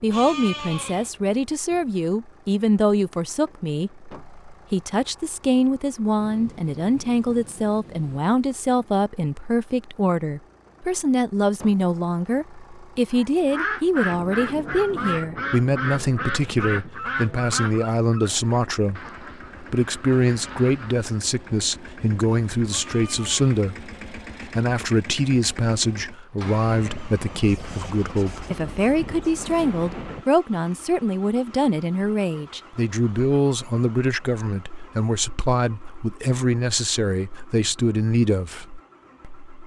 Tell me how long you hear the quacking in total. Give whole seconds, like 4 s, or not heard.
8 s.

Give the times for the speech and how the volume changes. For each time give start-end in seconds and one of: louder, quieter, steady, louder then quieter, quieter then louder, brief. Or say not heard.
0.0-39.5 steady.